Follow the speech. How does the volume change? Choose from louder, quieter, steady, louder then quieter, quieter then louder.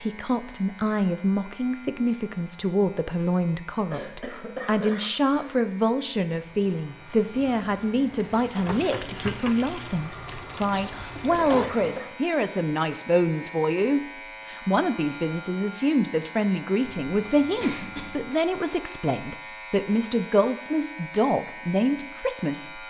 steady.